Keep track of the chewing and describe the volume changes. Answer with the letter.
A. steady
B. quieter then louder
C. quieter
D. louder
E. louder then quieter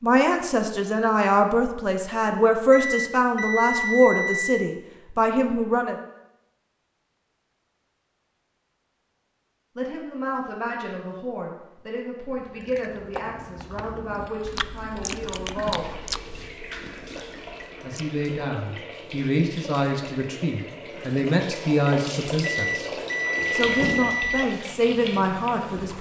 E.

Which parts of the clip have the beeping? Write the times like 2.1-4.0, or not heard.
2.7-4.7, 22.4-24.4.